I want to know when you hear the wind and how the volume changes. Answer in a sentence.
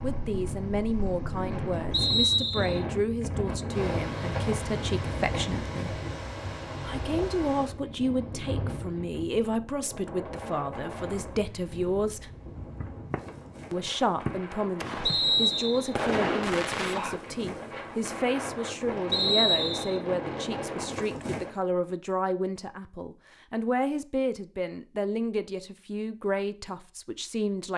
You can hear the wind from 0.0 to 21.6 s, getting quieter then louder.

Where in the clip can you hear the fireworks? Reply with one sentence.
You can hear the fireworks from 12.6 to 17.6 s.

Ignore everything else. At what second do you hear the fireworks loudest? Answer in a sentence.
The loudest moment of the fireworks is at 16 seconds.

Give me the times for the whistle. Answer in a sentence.
You can hear the whistle from 1.9 to 2.8 s, from 15.0 to 15.9 s and from 19.1 to 19.9 s.